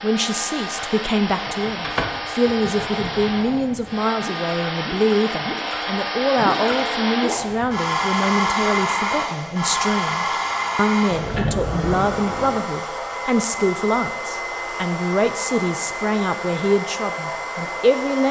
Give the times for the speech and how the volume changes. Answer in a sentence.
The speech can be heard from 0.0 to 18.2 s, at a steady volume.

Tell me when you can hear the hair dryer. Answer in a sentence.
You can hear the hair dryer from 0.0 to 18.2 s.